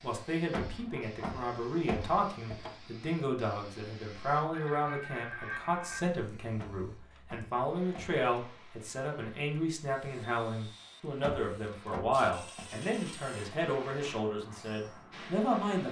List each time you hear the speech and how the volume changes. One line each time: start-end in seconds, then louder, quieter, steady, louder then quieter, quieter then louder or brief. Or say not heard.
0.0-15.8 steady.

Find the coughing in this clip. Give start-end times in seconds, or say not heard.
not heard.